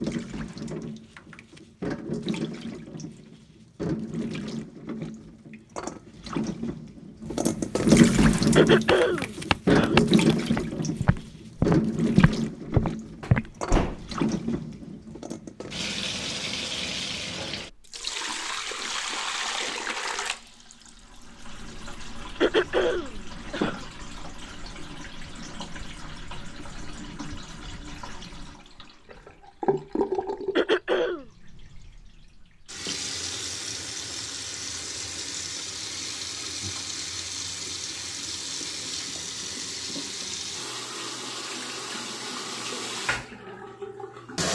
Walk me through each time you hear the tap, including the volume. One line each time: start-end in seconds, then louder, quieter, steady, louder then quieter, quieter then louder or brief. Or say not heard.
0.0-44.5 quieter.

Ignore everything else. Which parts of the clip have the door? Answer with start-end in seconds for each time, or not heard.
13.2-14.2.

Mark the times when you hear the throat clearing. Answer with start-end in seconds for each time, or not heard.
8.6-10.0, 22.4-23.9, 30.6-31.2.